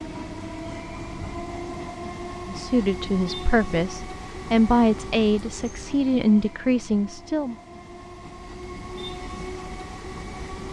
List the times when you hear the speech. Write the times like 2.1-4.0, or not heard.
2.5-7.5.